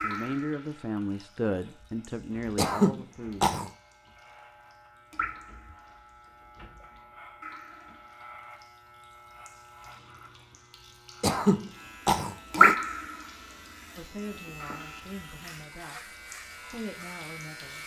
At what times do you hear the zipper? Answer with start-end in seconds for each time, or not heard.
not heard.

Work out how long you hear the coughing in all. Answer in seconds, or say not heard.
3 s.